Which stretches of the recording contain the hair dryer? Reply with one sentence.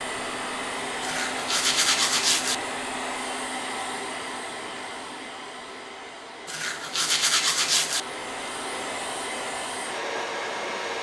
The hair dryer can be heard from 0.0 to 10.9 s.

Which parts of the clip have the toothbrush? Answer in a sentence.
The toothbrush can be heard from 1.0 to 2.5 s and from 6.5 to 8.0 s.